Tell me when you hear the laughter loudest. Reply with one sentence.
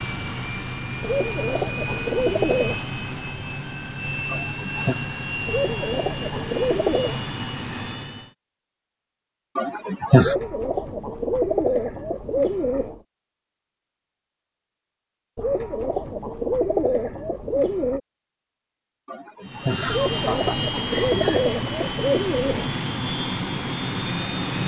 The loudest moment of the laughter is at 10 seconds.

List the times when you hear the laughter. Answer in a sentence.
The laughter can be heard from 4.2 to 5.0 s, from 9.6 to 10.3 s and from 19.1 to 21.4 s.